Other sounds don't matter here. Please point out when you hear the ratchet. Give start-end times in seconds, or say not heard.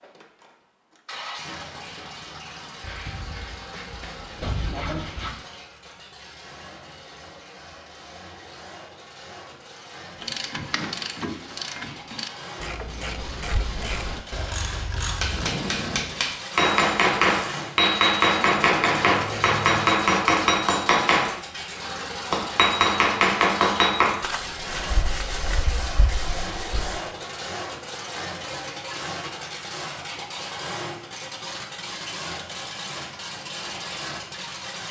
10.2-15.6.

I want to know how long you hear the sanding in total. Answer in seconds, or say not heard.
7 s.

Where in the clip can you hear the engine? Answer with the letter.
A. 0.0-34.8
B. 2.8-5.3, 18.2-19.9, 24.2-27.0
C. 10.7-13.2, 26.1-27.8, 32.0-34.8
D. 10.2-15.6
A.